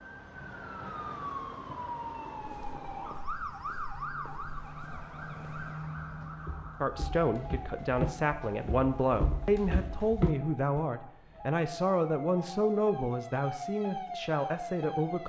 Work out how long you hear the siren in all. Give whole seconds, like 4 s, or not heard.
15 s.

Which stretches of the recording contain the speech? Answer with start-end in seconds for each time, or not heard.
6.8-15.2.